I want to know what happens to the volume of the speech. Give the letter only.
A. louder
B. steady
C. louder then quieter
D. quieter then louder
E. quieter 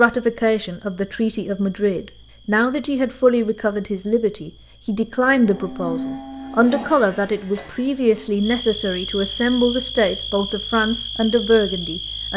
B.